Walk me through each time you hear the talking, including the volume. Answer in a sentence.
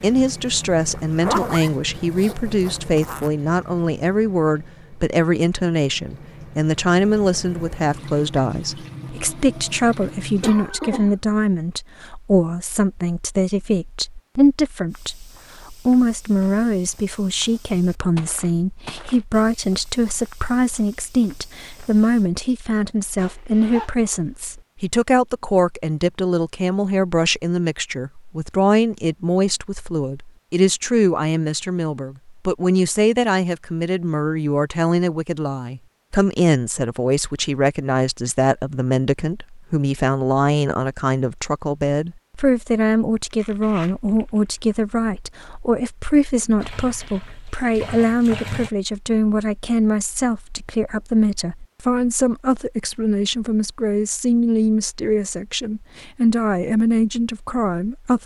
The talking can be heard from 0.0 to 58.2 s, at a steady volume.